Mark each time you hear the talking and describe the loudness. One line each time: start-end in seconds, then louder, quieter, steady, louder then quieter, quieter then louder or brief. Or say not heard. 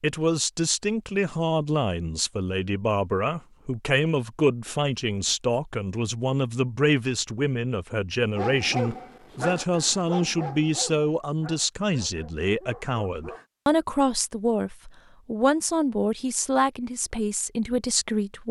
0.0-18.4 steady.